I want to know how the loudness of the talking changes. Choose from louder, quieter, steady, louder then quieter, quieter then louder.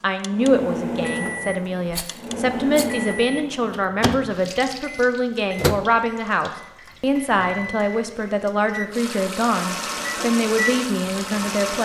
steady.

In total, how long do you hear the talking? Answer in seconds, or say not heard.
12 s.